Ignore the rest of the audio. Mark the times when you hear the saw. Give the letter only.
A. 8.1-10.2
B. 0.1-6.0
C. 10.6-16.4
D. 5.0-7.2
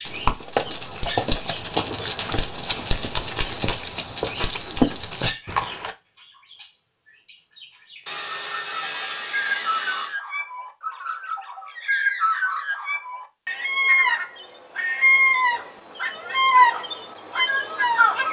A.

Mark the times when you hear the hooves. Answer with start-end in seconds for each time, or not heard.
0.1-6.0.